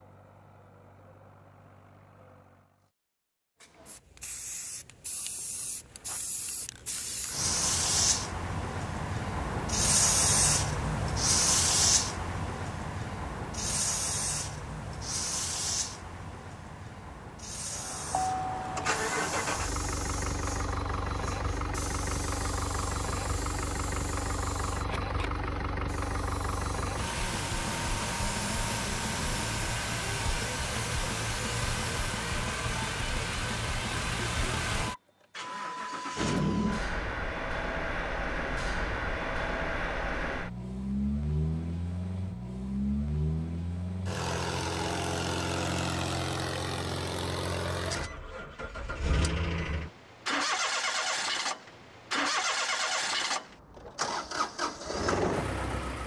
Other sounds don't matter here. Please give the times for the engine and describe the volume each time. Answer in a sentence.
The engine can be heard briefly from 0.0 to 2.9 s; and from 17.6 to 56.0 s, at a steady volume.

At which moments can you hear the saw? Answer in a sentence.
You can't hear the saw here.